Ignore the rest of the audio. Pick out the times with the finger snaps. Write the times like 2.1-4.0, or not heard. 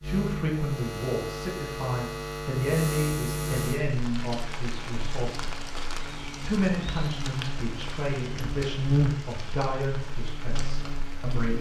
not heard.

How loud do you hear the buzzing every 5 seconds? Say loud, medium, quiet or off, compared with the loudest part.
loud, loud, medium.